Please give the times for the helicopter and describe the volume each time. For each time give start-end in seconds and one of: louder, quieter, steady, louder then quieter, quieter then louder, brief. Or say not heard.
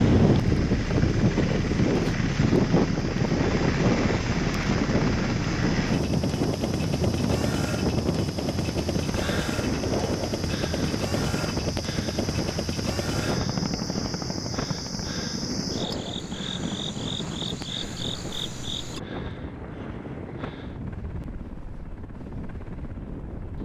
0.0-23.6 quieter.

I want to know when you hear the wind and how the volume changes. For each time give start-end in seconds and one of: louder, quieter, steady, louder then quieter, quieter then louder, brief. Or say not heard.
0.0-23.6 quieter.